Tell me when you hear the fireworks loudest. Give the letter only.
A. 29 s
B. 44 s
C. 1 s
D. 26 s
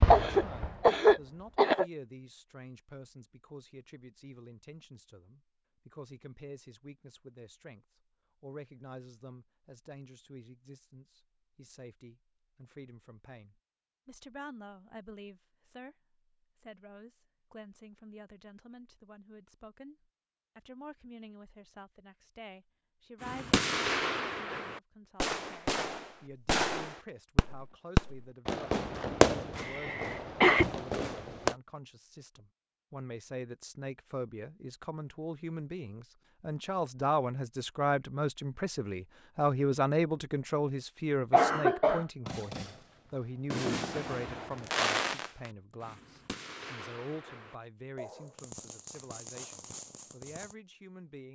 A.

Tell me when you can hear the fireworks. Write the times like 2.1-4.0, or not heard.
0.0-0.8, 23.2-31.6, 42.2-50.5.